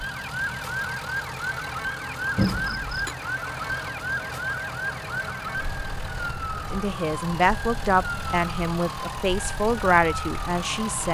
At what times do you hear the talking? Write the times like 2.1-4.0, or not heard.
6.5-11.1.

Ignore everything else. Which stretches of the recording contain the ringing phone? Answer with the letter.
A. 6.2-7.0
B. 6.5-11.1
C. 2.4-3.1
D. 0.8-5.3
C.